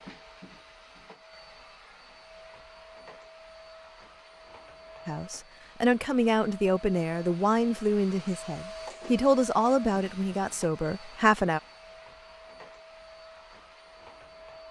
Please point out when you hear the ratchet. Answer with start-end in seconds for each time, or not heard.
not heard.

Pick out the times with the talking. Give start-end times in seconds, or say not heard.
5.0-11.6.